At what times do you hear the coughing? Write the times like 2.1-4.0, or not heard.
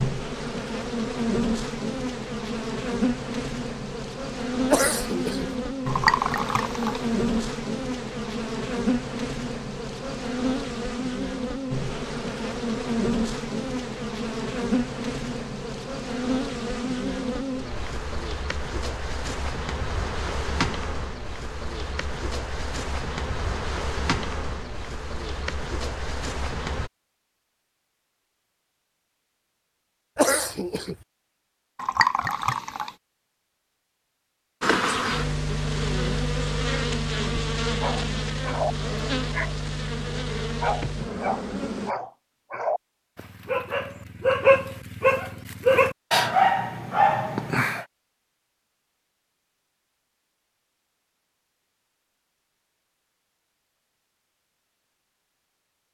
4.7-5.5, 30.1-30.9.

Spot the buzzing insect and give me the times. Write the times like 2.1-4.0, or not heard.
0.0-26.9, 34.6-42.0.